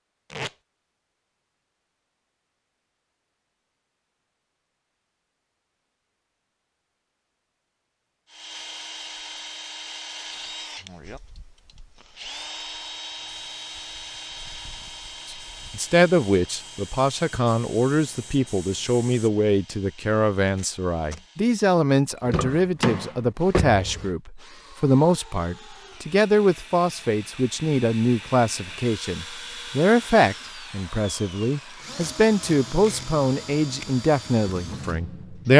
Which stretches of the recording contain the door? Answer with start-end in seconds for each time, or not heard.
22.2-24.1.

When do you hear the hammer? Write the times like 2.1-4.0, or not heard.
not heard.